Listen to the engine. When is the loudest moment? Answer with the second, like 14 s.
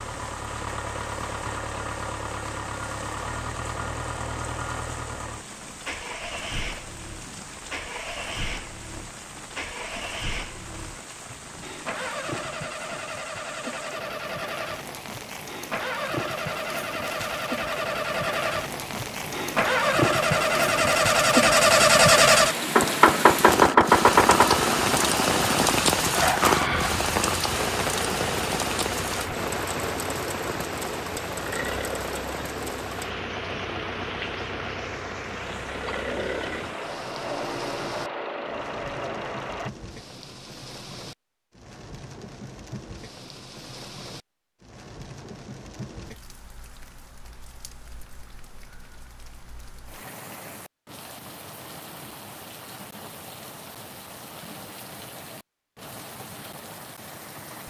22 s.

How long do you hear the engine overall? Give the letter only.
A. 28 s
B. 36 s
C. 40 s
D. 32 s
C.